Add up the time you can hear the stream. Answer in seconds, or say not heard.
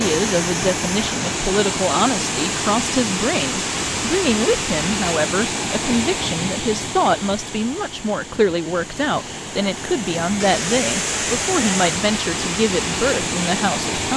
14 s.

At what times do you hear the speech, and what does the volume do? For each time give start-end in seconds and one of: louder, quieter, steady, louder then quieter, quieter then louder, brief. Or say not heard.
0.0-14.1 steady.